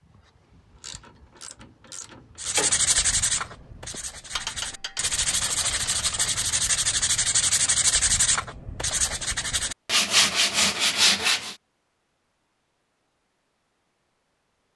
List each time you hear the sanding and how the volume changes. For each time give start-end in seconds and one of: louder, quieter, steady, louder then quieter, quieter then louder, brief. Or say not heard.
2.4-11.6 louder.